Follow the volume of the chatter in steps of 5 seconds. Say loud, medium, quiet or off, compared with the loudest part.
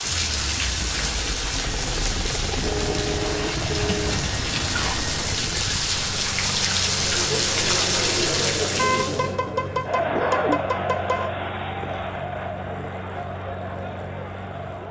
off, loud, loud.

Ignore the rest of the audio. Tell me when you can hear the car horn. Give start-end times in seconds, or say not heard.
2.6-4.2, 8.8-11.3.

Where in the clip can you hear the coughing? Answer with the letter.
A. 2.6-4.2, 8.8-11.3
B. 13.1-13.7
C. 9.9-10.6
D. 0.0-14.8
C.